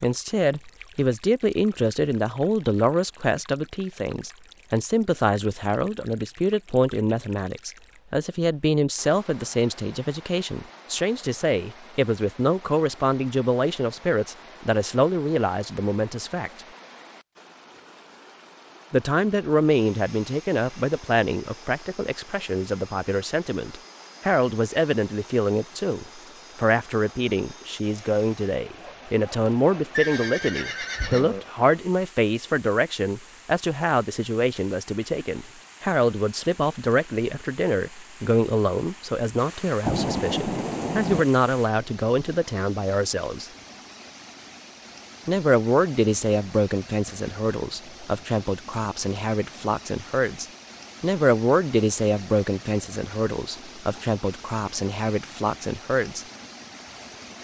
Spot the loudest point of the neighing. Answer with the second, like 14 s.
30 s.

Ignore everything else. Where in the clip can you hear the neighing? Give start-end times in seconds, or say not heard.
29.9-31.4.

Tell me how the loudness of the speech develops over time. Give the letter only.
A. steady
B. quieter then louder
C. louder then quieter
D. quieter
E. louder
A.